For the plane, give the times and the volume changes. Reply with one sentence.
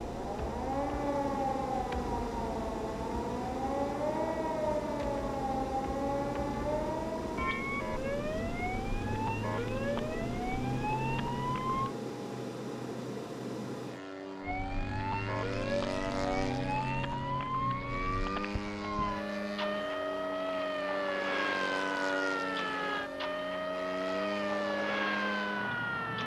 The plane can be heard from 0.0 to 26.2 s, at a steady volume.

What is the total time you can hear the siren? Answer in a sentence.
The siren can be heard for 24 seconds in total.